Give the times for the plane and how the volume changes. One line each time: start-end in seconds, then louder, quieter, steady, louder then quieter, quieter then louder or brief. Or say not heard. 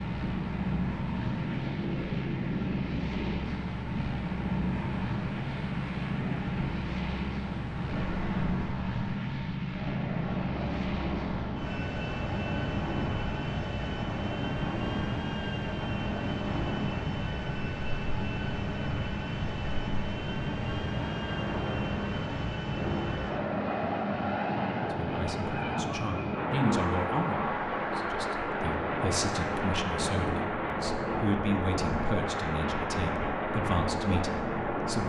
0.0-35.0 steady.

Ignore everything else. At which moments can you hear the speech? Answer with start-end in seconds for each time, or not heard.
24.9-35.0.